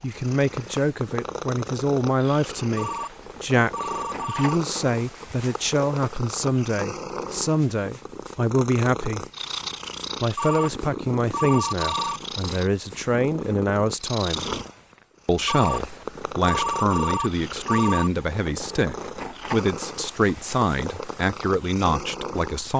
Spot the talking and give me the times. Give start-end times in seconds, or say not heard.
0.0-9.2, 10.2-14.4, 15.2-22.7.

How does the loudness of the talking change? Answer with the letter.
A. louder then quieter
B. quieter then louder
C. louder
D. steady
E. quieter
D.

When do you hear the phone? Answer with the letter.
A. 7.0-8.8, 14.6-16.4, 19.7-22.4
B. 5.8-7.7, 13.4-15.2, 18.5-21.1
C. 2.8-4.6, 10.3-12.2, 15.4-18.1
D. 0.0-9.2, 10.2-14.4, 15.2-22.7
C.